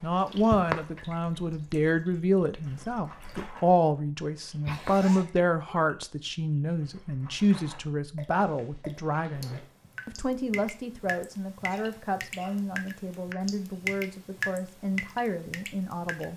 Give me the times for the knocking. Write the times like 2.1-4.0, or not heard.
not heard.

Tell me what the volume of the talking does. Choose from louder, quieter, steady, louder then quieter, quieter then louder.
quieter.